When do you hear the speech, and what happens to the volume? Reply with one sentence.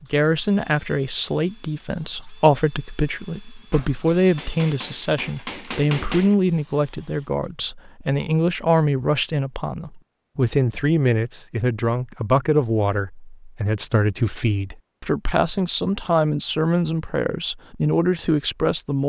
The speech can be heard from 0.0 to 19.0 s, at a steady volume.